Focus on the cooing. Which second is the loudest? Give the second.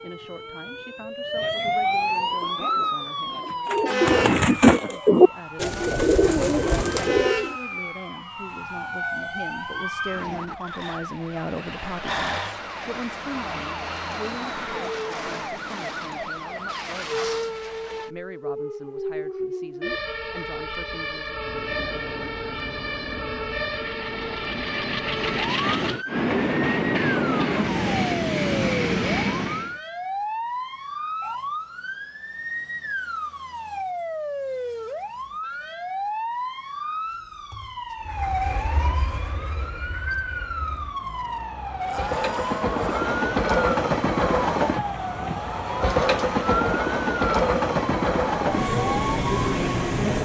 5 s.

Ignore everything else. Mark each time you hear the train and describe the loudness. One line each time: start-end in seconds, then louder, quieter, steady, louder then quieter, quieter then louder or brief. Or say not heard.
21.2-29.8 louder
38.0-50.2 louder.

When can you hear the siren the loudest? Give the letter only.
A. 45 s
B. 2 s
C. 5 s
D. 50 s
B.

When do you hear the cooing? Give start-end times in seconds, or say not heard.
2.2-7.5.